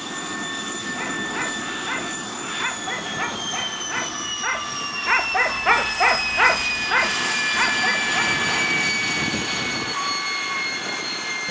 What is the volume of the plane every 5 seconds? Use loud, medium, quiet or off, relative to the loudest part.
medium, loud, loud.